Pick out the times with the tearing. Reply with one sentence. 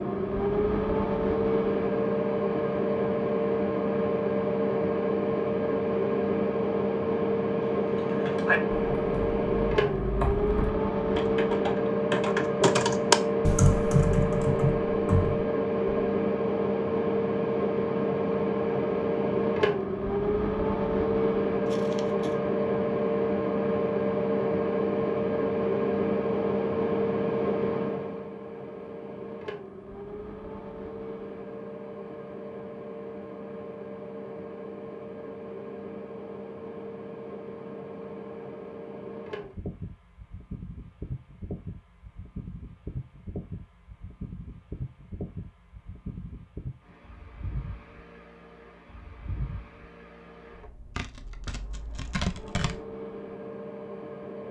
You can hear the tearing from 21.6 to 22.4 s and from 51.0 to 52.8 s.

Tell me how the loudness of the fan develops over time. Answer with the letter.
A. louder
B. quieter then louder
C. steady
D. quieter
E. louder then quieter
D.